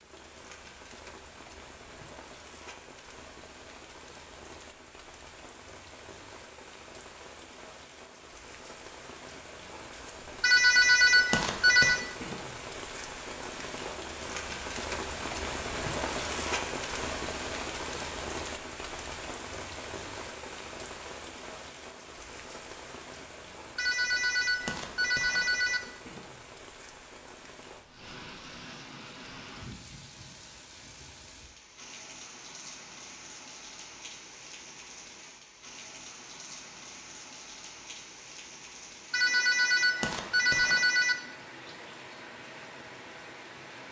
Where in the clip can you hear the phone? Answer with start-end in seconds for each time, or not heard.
10.4-12.0, 23.8-25.8, 39.1-41.1.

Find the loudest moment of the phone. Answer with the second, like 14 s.
11 s.